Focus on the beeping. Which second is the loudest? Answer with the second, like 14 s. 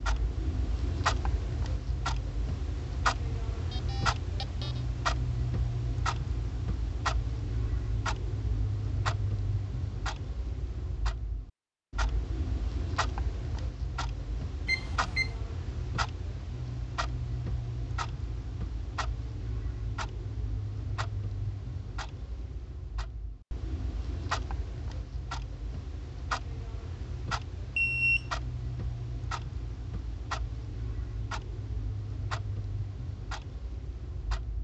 28 s.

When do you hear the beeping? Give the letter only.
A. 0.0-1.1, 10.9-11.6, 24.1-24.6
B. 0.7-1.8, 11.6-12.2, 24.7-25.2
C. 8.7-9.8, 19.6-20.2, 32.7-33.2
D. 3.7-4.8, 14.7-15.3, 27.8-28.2
D.